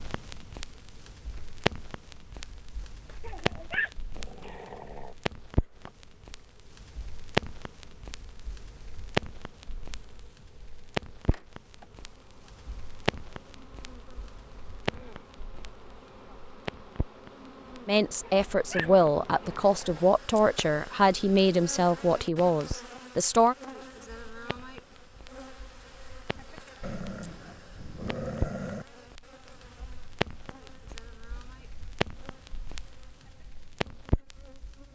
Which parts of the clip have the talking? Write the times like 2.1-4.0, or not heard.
17.9-23.6.